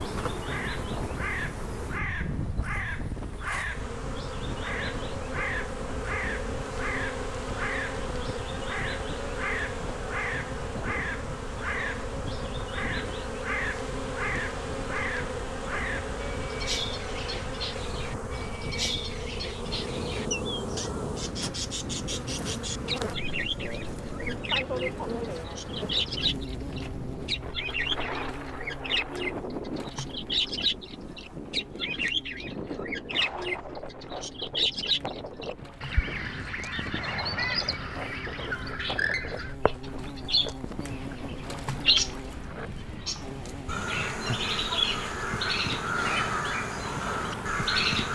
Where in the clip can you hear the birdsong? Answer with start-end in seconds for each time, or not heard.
0.0-48.0.